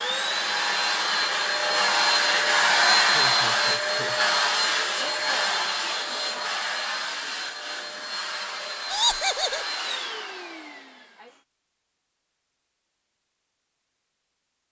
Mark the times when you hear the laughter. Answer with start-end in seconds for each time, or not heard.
3.0-4.3, 8.8-9.7.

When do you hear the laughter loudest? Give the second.
9 s.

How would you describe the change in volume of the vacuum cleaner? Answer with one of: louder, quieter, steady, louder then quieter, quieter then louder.
quieter.